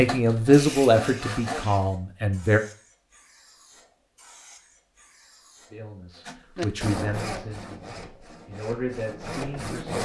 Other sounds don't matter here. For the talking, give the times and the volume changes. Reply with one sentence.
The talking can be heard briefly from 0.0 to 2.6 s; and from 5.7 to 9.9 s, getting quieter then louder.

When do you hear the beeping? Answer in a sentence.
The beeping can't be heard in this clip.